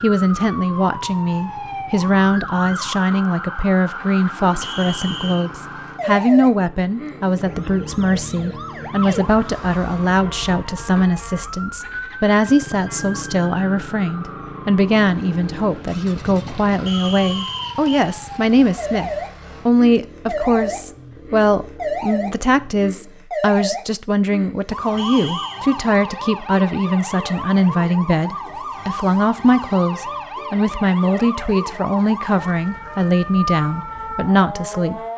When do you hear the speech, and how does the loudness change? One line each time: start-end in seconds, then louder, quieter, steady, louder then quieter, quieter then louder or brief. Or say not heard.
0.0-35.0 steady.